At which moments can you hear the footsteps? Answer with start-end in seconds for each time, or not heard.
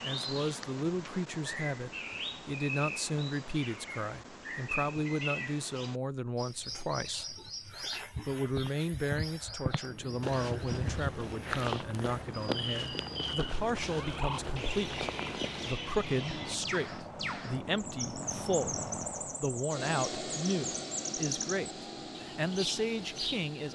8.5-15.8.